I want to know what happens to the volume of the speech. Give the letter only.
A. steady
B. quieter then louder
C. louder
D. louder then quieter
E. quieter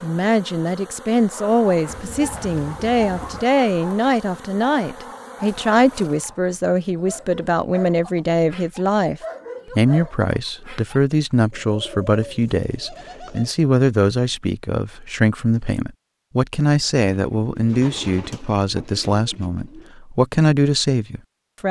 A.